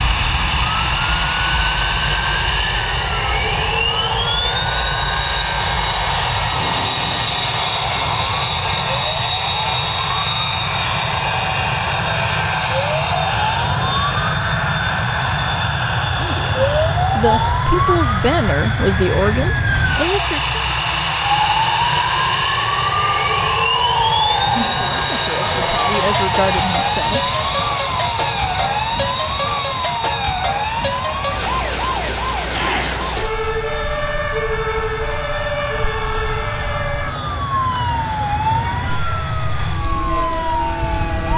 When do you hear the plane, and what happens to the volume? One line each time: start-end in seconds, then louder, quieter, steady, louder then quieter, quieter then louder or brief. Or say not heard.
0.0-41.3 quieter.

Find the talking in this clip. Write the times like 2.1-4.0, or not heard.
16.1-20.6, 24.8-27.8.